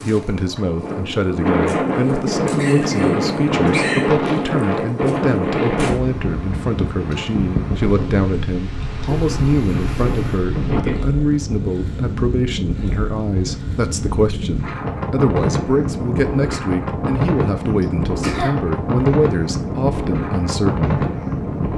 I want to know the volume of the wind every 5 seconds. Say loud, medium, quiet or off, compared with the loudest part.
loud, loud, medium, loud, loud.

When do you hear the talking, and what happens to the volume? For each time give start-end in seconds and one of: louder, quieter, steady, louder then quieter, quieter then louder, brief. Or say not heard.
0.0-20.9 steady.